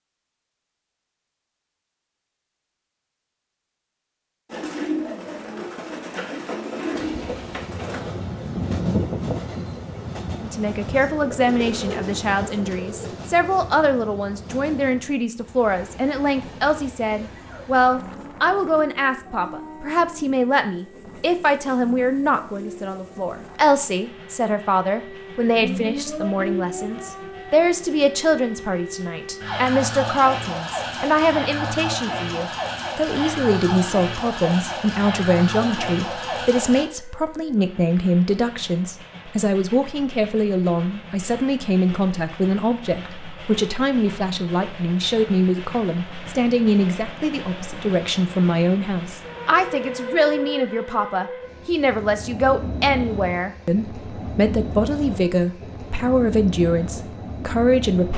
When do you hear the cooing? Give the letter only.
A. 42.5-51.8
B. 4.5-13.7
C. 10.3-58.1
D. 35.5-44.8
B.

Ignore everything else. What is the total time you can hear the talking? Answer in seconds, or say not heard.
48 s.